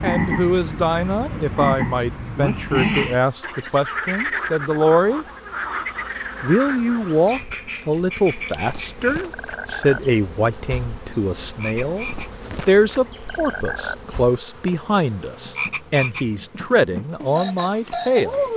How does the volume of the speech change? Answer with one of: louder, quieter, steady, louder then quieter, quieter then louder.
steady.